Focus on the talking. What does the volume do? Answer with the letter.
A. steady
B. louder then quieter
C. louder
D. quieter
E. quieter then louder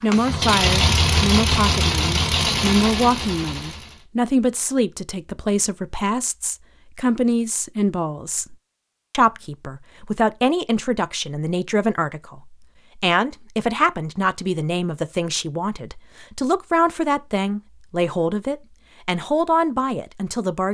A.